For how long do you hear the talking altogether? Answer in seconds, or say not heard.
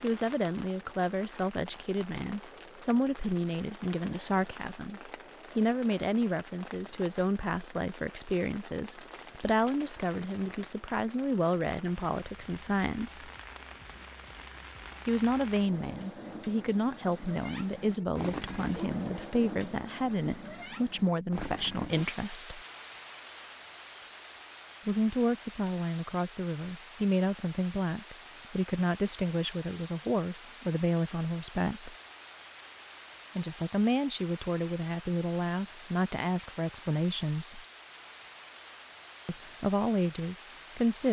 34 s.